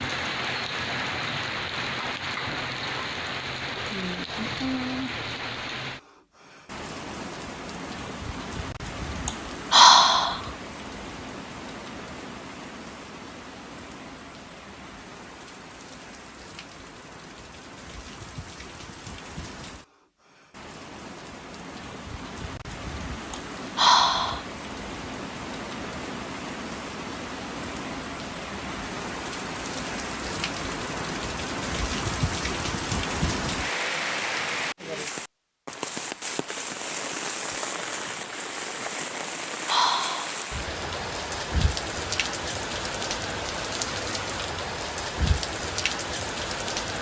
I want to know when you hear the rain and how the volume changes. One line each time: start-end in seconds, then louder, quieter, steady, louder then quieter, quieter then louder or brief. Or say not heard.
0.0-46.9 quieter then louder.